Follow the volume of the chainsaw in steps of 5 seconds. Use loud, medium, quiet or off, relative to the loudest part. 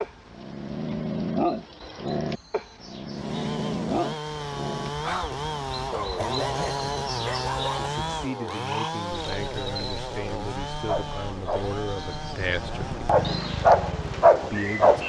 loud, loud, medium.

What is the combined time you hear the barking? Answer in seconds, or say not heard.
12 s.